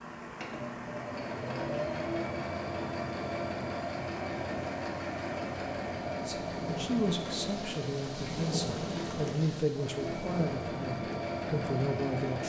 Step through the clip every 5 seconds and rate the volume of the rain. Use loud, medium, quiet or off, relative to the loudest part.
medium, loud, loud.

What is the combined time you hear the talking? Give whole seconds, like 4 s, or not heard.
6 s.